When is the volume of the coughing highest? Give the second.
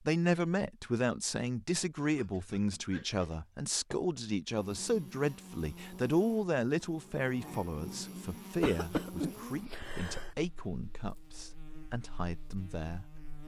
9 s.